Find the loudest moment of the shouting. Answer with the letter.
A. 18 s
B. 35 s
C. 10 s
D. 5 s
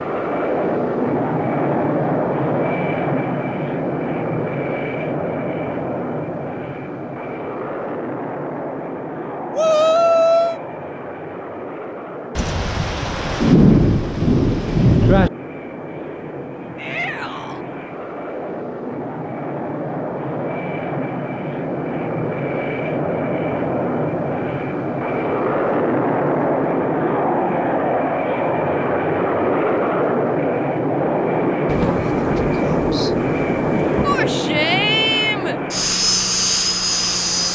C.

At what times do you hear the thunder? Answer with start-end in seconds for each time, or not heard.
12.3-15.3, 31.6-34.2.